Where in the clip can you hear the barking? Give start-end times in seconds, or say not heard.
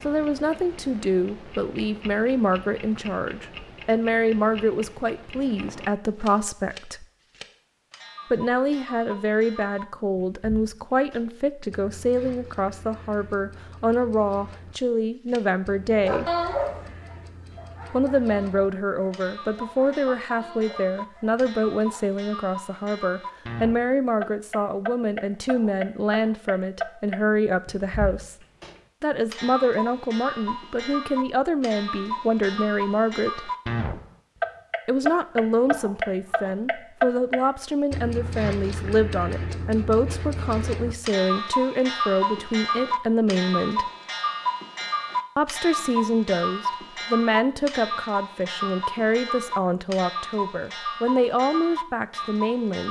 15.9-22.1.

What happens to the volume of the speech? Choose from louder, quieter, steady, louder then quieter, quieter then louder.
steady.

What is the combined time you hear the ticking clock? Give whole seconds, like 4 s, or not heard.
53 s.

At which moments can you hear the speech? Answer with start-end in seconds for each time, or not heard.
0.1-7.0, 8.3-16.2, 17.9-28.4, 29.0-33.5, 34.9-43.9, 45.4-52.8.